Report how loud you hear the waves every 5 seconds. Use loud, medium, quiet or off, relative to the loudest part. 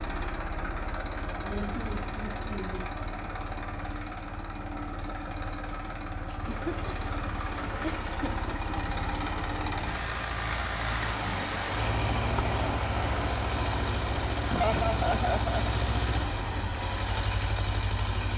off, medium, loud, medium.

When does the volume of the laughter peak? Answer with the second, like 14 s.
15 s.